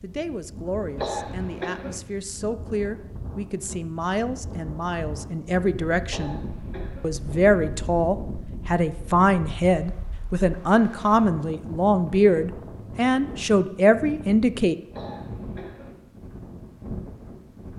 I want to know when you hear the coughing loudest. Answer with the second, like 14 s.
1 s.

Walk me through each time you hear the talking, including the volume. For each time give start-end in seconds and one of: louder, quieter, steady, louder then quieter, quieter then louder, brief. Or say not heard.
0.0-6.4 louder
7.0-14.8 steady.